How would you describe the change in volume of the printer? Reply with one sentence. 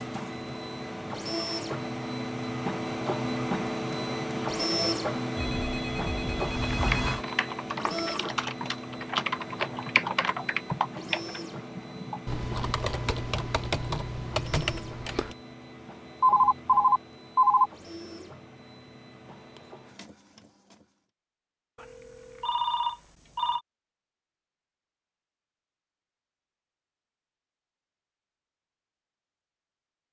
The loudness of the printer goes down.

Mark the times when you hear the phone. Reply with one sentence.
You can hear the phone from 5.3 to 7.2 s, from 16.2 to 17.7 s and from 21.8 to 23.6 s.